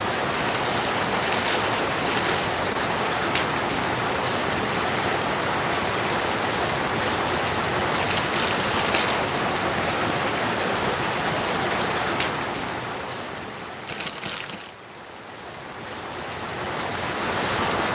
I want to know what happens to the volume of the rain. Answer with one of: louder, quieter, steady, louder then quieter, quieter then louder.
quieter.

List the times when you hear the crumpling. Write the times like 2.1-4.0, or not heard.
0.3-2.5, 8.0-9.2, 13.8-14.8.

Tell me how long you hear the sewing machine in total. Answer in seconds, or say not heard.
not heard.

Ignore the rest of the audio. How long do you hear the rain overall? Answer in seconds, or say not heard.
18 s.